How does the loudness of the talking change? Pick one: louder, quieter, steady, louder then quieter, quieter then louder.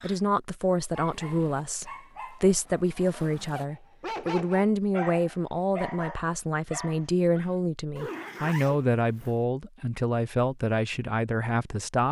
steady.